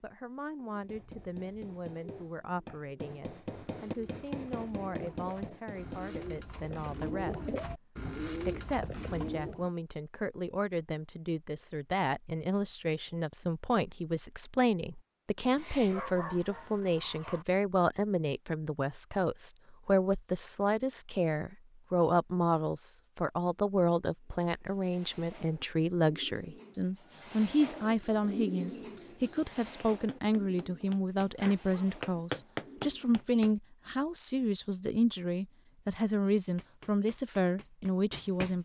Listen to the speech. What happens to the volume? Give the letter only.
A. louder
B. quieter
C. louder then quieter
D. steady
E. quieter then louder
A.